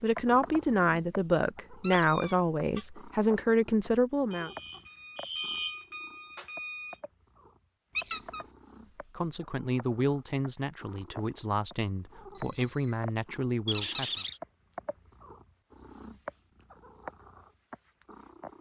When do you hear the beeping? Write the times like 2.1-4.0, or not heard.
4.3-7.0, 12.3-13.0.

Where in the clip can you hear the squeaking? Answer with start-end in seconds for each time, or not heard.
1.8-2.9, 8.0-8.4, 13.7-14.4.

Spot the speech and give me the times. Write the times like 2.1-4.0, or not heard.
0.0-4.5, 9.1-14.2.